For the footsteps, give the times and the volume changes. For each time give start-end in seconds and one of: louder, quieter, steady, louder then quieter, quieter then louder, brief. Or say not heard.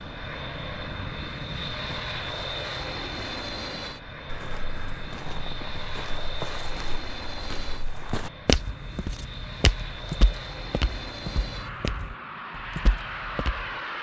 4.2-13.8 louder then quieter.